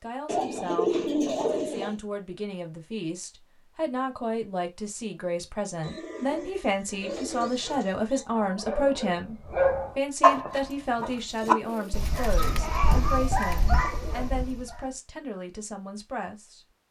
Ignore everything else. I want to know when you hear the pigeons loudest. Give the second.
1 s.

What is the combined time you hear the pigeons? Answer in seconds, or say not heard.
7 s.